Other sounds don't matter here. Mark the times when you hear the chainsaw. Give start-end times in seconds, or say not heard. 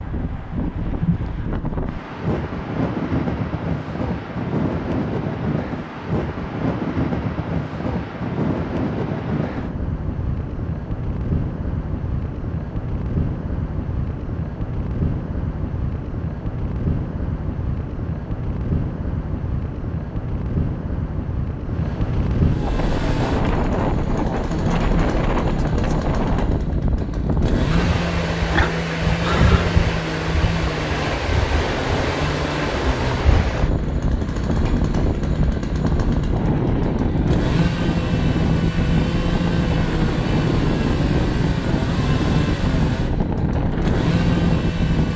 22.5-45.1.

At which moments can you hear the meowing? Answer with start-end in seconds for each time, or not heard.
not heard.